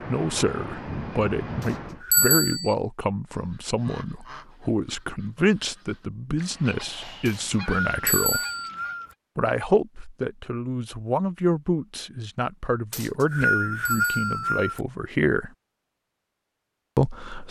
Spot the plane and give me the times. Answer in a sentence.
The plane can be heard from 0.0 to 2.0 s.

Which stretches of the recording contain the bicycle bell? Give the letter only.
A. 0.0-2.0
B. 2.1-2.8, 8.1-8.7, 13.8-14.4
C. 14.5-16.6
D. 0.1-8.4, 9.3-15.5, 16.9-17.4
B.